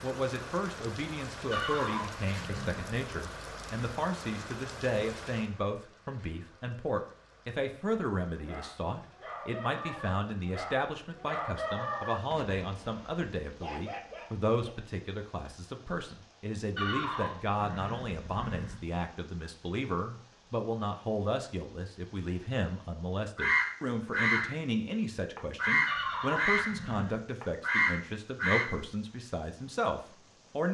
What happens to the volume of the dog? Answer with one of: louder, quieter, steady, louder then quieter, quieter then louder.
louder then quieter.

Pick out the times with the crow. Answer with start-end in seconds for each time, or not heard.
23.4-24.5, 25.4-26.8, 27.4-28.7.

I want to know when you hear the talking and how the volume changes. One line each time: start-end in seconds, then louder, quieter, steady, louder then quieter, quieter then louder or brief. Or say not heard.
0.0-30.6 steady.